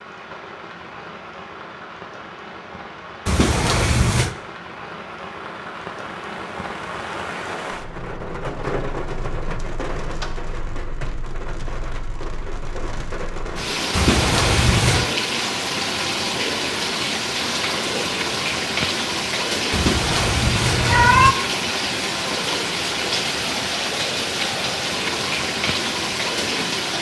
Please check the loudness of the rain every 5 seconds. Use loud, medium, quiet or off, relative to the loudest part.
quiet, medium, medium, loud, loud, loud.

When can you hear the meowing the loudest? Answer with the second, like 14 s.
21 s.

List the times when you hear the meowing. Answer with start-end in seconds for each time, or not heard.
3.2-4.3, 13.9-15.1, 19.7-21.4.